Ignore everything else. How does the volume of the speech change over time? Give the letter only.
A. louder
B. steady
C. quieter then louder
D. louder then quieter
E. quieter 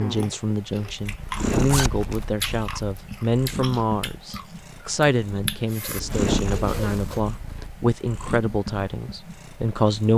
B.